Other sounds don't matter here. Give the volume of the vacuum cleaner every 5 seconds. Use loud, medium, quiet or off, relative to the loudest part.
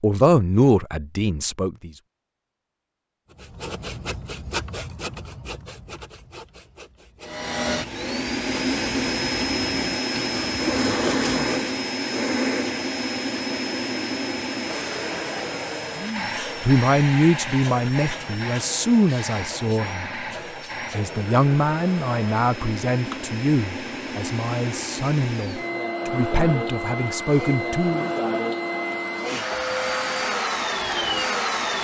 off, loud, loud, medium, medium, loud, loud.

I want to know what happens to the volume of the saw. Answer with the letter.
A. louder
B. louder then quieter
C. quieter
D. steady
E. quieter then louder
E.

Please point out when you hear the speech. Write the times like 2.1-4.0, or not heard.
0.0-1.9, 15.9-20.1, 20.9-28.1.